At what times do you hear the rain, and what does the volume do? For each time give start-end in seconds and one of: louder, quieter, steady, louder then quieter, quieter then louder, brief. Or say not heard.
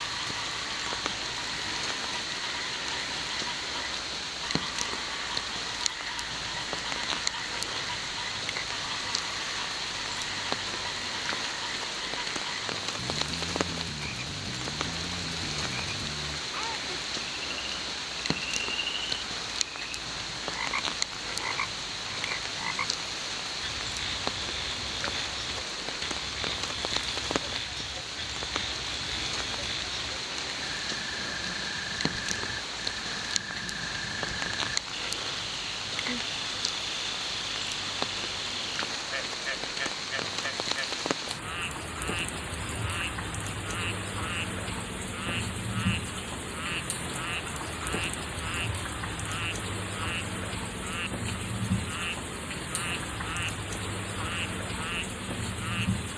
0.0-56.1 steady.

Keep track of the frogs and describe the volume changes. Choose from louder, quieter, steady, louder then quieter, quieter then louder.
steady.